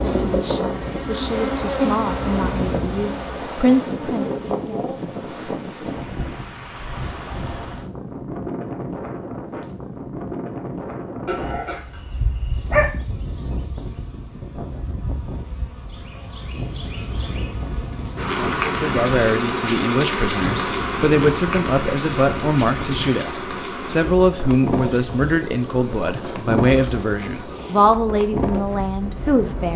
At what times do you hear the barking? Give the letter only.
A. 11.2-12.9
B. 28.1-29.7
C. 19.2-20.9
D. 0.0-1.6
A.